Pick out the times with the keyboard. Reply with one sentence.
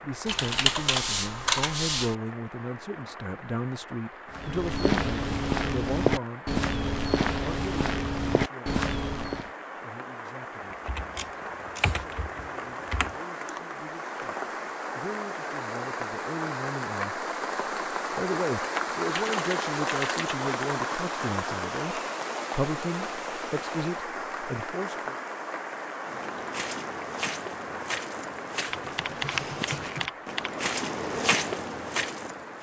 The keyboard can be heard from 0.2 to 2.1 s, from 10.7 to 13.2 s, from 19.1 to 20.4 s and from 28.7 to 30.5 s.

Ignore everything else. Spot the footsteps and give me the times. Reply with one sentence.
The footsteps can be heard from 4.3 to 9.5 s and from 26.1 to 32.5 s.